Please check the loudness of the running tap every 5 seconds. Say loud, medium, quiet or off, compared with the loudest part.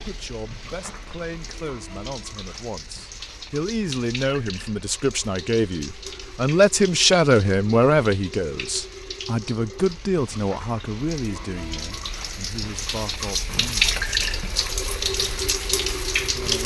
quiet, quiet, loud, loud.